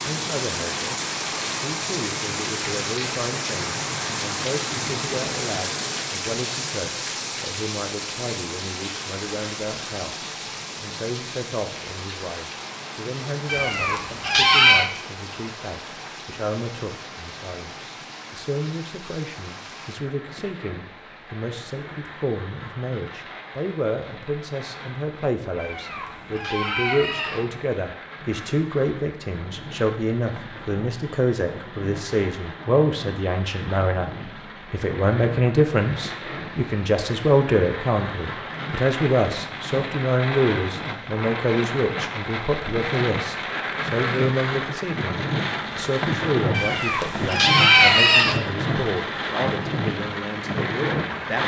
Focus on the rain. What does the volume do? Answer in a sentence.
The loudness of the rain goes down, then up.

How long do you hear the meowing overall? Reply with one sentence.
The meowing can be heard for 5 seconds in total.